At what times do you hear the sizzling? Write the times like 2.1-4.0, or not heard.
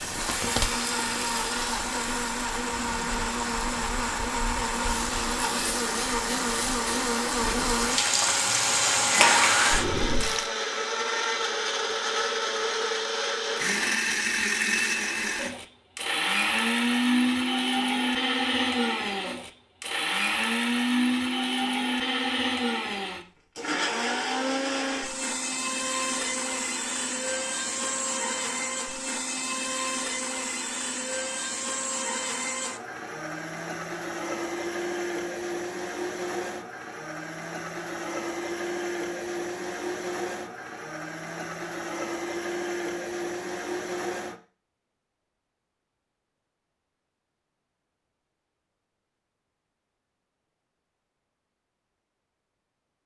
0.0-10.5.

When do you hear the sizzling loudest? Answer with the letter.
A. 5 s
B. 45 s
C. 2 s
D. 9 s
D.